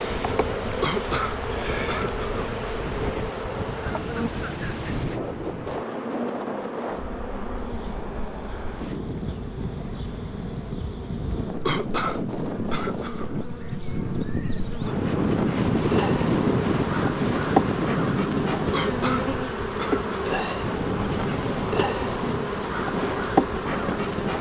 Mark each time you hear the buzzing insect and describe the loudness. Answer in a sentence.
The buzzing insect can be heard from 0.0 to 24.3 s, getting quieter then louder.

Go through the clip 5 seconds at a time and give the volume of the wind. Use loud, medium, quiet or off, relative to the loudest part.
medium, medium, medium, loud, medium.